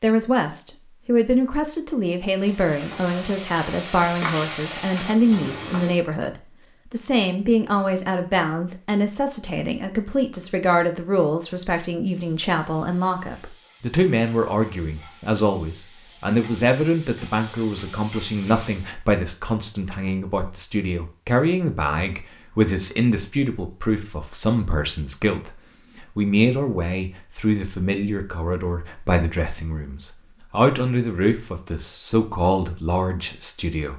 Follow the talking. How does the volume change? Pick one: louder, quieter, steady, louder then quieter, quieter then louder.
steady.